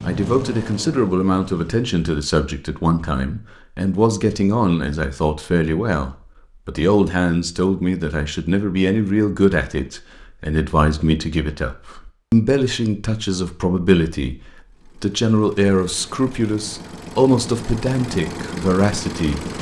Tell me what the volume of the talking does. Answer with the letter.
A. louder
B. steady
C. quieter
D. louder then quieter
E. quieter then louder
B.